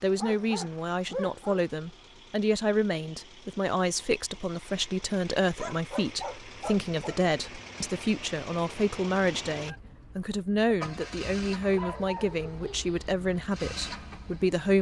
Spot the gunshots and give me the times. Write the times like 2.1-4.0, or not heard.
not heard.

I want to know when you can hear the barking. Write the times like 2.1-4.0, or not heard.
0.1-1.6, 5.5-7.3, 11.6-13.1.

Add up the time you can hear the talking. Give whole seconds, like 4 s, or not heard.
15 s.